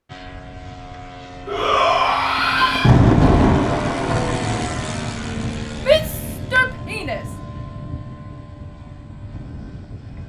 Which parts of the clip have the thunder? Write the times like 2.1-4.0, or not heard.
2.4-5.5.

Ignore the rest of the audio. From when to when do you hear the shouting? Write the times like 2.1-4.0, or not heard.
1.4-3.0, 5.8-7.2.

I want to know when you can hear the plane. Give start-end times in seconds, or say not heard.
0.1-10.2.